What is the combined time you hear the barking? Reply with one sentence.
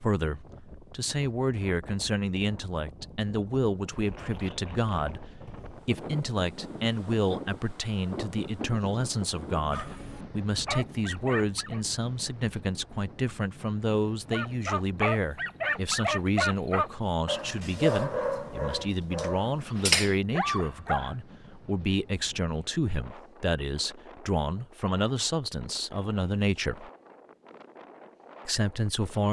The barking can be heard for 9 seconds in total.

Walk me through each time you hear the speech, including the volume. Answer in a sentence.
You can hear the speech from 0.0 to 26.9 s, at a steady volume; and briefly from 28.4 to 29.2 s.